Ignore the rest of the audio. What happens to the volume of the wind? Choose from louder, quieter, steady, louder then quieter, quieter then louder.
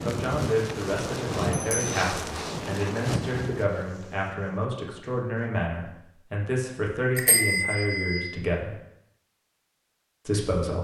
quieter.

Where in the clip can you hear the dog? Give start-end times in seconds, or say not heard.
not heard.